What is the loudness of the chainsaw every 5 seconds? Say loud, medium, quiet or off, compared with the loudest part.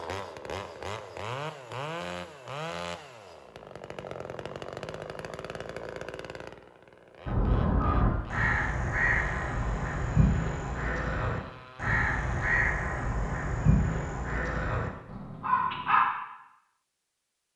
loud, medium, medium, off.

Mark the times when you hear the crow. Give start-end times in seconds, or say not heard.
7.2-16.1.